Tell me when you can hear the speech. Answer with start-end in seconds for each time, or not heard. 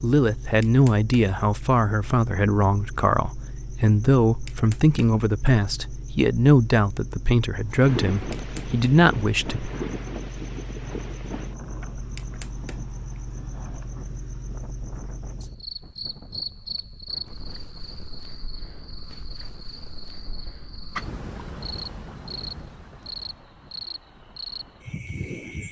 0.0-9.7.